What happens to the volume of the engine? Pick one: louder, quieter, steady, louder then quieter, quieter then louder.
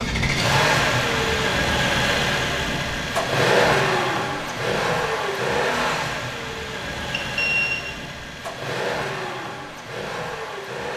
quieter.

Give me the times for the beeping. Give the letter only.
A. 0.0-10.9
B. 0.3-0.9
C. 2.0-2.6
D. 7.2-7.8
D.